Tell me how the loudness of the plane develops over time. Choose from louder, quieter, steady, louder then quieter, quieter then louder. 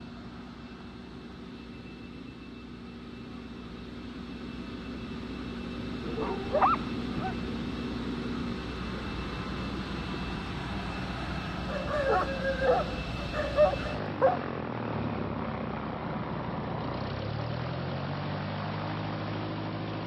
louder.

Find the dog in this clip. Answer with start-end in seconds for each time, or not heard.
6.0-7.3, 11.7-14.4.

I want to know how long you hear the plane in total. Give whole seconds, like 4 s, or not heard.
20 s.